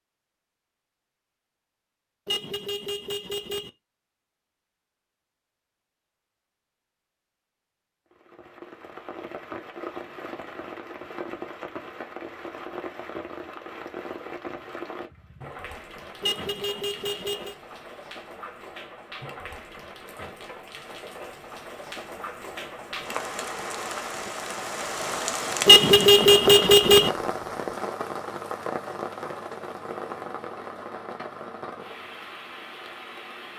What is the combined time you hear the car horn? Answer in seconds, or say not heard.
4 s.